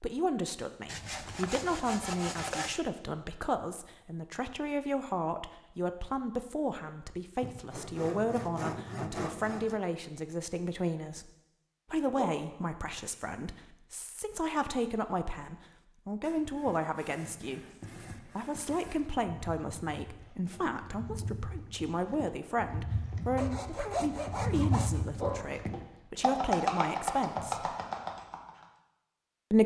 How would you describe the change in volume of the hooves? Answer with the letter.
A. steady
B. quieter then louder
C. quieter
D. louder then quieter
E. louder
E.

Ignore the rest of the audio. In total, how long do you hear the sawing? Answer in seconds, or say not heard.
9 s.